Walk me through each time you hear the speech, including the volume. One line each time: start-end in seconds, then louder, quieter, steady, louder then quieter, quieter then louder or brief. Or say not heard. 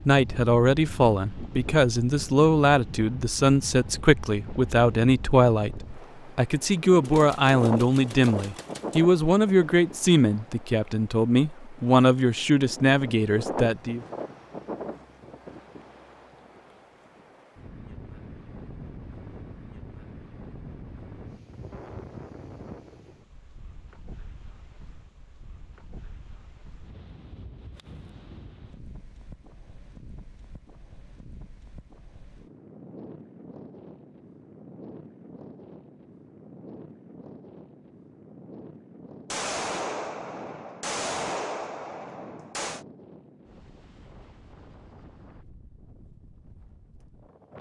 0.1-14.1 steady.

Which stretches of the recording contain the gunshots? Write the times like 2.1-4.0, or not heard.
7.0-9.0, 39.3-42.9.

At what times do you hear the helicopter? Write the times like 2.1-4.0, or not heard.
not heard.